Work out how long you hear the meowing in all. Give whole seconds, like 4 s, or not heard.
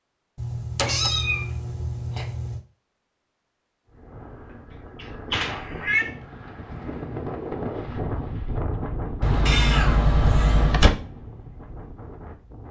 4 s.